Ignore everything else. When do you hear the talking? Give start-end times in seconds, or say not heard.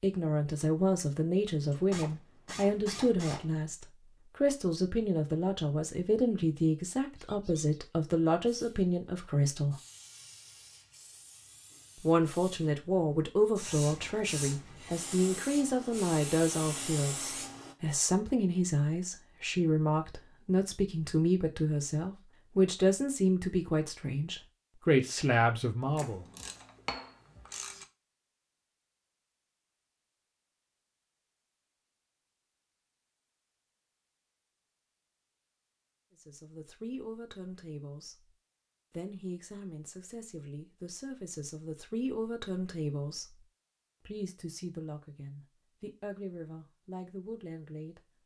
0.0-9.8, 11.9-26.2, 36.1-43.5, 44.0-48.0.